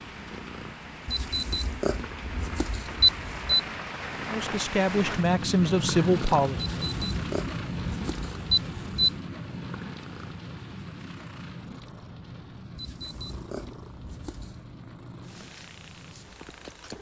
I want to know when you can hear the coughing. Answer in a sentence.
The coughing can't be heard in this clip.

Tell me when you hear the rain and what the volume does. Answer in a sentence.
You can hear the rain from 0.0 to 16.9 s, getting louder then quieter.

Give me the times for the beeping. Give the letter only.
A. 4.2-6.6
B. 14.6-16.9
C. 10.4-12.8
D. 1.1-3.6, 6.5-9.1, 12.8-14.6
D.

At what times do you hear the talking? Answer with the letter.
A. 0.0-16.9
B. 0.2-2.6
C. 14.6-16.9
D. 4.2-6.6
D.